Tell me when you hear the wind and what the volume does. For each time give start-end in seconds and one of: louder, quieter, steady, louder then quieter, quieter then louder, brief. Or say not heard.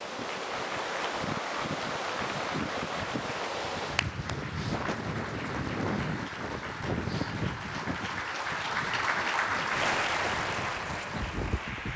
0.0-11.9 quieter.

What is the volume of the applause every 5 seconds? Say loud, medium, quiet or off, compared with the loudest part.
medium, loud, loud.